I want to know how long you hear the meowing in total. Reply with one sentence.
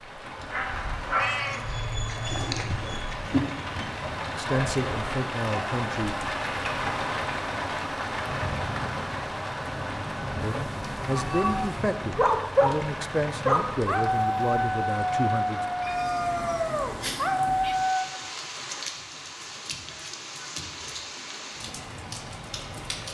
You can hear the meowing for 5 seconds altogether.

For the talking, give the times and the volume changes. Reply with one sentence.
The talking can be heard briefly from 4.2 to 6.2 s; and from 10.4 to 15.7 s, at a steady volume.